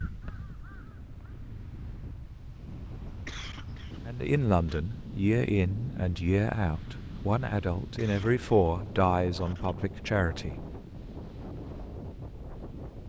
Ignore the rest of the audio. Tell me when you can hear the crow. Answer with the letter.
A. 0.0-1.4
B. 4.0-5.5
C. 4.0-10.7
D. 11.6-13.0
A.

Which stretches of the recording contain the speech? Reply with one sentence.
You can hear the speech from 4.0 to 10.7 s.